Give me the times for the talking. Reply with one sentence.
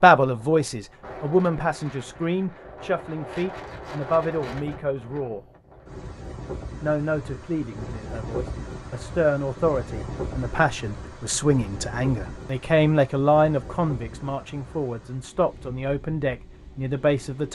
The talking can be heard from 0.0 to 5.4 s and from 6.8 to 17.5 s.